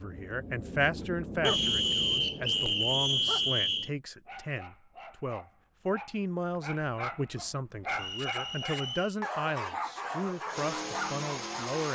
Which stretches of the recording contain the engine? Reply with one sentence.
You can hear the engine from 9.9 to 11.8 s.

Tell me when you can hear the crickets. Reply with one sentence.
The crickets can't be heard in this clip.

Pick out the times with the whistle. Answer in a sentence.
You can hear the whistle from 1.4 to 3.9 s and from 8.0 to 9.2 s.